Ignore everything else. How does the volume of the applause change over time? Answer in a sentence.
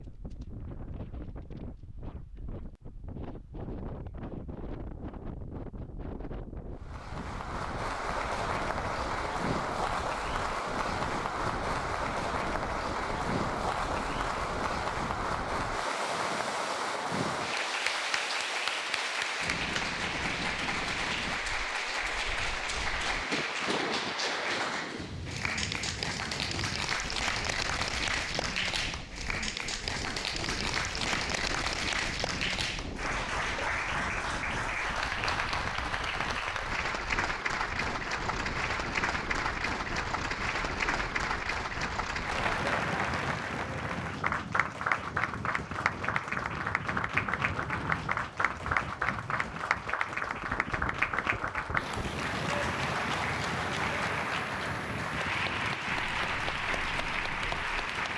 The loudness of the applause stays about the same.